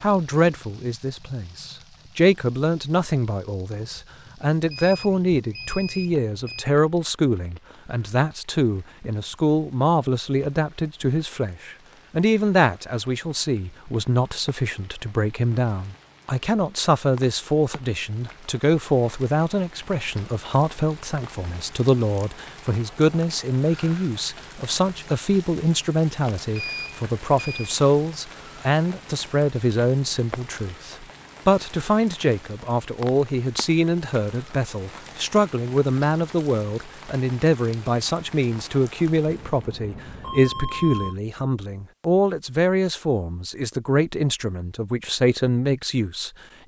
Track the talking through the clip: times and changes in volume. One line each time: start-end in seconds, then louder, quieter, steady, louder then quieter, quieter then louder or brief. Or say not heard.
0.0-46.3 steady.